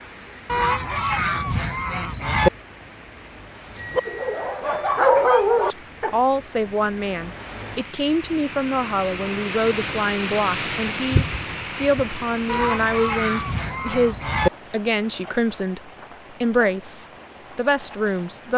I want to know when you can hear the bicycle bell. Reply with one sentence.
The bicycle bell can be heard from 3.8 to 4.5 s.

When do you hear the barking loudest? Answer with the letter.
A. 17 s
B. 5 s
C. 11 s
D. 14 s
B.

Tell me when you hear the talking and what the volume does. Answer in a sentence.
The talking can be heard from 5.7 to 15.8 s, at a steady volume; and briefly from 16.4 to 18.5 s.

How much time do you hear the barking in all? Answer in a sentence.
The barking can be heard for 2 seconds in total.